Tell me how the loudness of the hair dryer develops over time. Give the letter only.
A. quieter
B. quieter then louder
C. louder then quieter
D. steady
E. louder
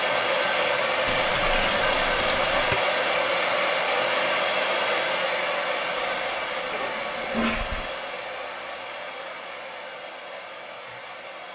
A.